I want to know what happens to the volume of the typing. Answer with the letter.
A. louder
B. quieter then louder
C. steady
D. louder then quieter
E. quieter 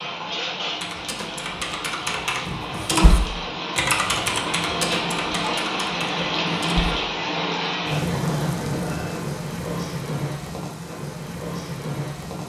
D.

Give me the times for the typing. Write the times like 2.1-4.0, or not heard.
0.8-7.0.